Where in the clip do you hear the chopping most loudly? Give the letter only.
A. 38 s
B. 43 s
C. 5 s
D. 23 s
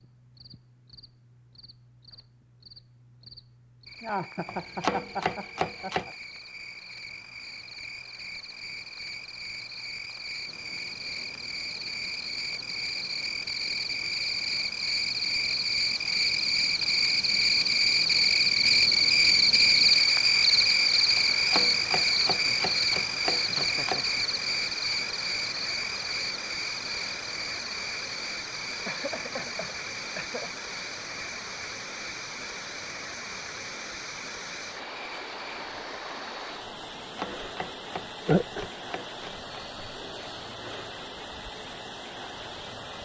C.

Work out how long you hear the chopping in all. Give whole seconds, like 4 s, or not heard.
7 s.